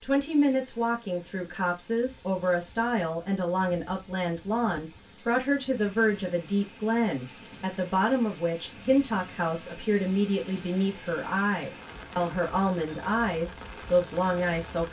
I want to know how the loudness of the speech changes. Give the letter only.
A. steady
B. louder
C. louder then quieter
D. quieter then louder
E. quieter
A.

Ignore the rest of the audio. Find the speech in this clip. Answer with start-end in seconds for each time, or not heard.
0.0-14.8.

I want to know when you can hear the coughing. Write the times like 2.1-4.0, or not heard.
not heard.